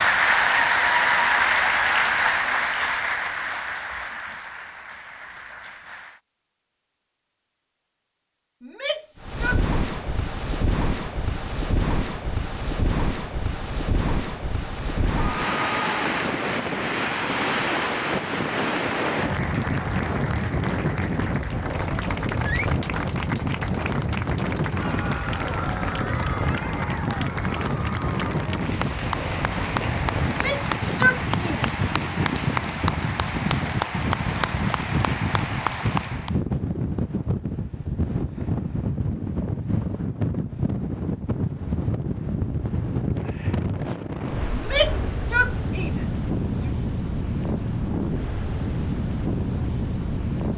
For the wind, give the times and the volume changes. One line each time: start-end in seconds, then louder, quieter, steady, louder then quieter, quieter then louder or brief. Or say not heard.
9.2-50.5 steady.